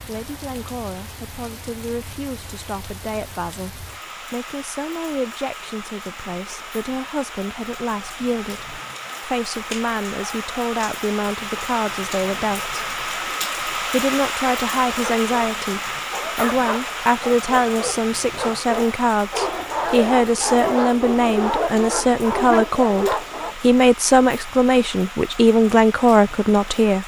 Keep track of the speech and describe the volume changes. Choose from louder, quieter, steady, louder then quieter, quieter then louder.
louder.